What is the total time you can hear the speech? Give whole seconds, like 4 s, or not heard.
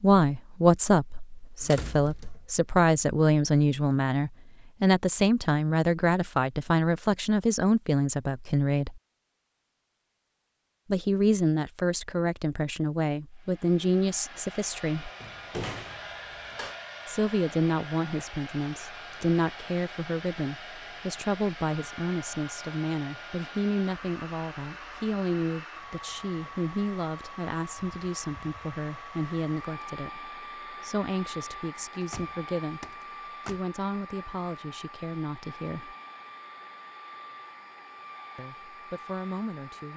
34 s.